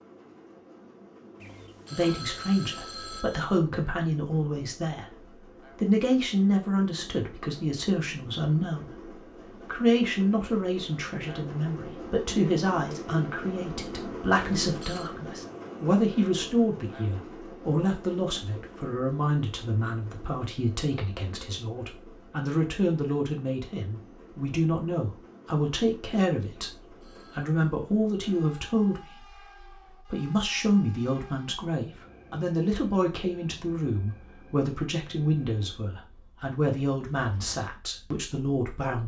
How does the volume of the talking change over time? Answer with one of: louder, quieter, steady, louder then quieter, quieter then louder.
steady.